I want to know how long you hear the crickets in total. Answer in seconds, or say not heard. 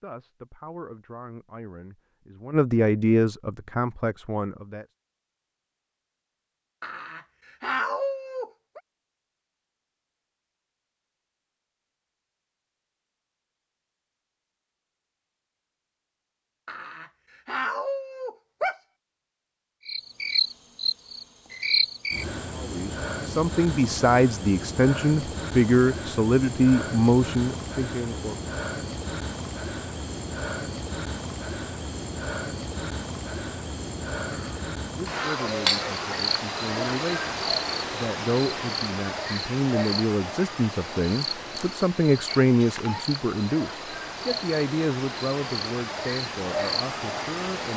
28 s.